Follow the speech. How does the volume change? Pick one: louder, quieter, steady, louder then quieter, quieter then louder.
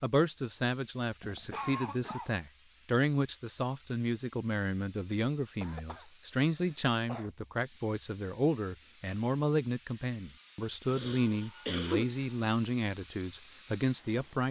steady.